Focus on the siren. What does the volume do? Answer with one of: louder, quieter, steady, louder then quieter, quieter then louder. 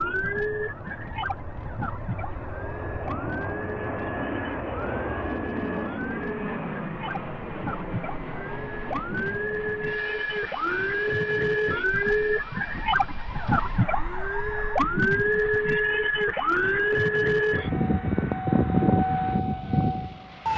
louder.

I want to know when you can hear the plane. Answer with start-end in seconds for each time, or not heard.
0.0-20.5.